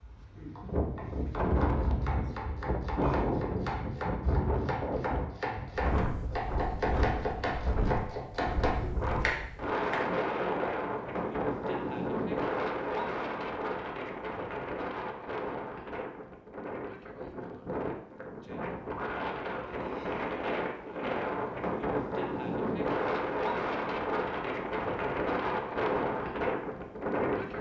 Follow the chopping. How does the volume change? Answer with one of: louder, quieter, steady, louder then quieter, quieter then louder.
louder.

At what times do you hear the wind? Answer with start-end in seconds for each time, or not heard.
0.0-27.5.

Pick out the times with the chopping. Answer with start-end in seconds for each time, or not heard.
0.1-10.0.